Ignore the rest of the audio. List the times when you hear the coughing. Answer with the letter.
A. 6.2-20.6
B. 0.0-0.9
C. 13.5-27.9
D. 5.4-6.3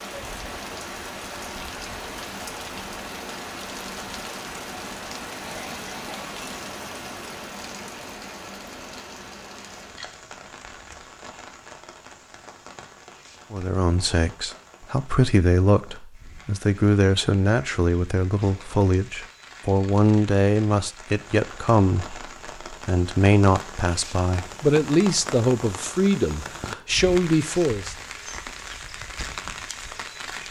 D.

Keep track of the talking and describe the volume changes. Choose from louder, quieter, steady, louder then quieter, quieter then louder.
steady.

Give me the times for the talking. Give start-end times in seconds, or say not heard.
13.5-27.9.